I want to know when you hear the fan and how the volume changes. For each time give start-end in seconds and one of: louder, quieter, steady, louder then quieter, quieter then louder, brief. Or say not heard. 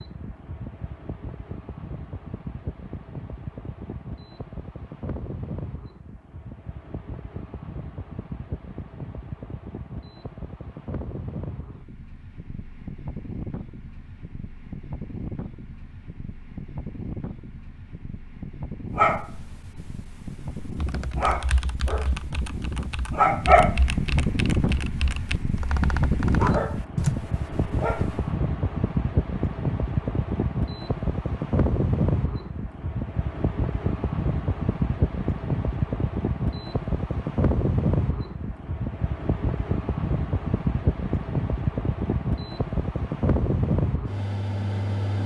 0.0-45.2 louder.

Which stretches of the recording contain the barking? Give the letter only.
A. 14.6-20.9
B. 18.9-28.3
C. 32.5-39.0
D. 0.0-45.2
B.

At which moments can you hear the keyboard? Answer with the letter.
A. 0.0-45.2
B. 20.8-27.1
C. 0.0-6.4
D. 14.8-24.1
B.